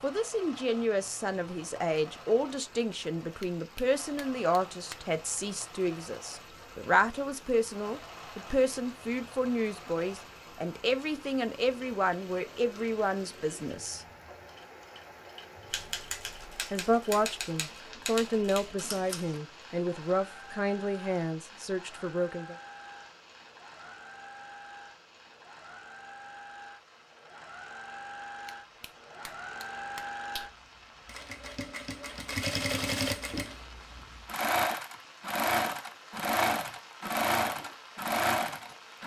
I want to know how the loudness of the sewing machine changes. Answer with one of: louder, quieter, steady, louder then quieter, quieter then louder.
louder.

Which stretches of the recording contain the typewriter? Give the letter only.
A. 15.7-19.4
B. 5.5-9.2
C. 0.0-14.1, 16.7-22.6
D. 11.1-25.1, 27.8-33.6
A.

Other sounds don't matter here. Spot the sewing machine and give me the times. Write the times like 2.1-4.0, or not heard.
0.0-39.0.